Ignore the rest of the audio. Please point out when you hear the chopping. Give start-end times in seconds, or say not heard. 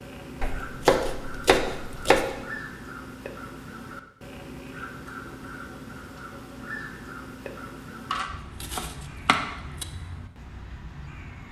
0.4-2.3, 8.1-9.8.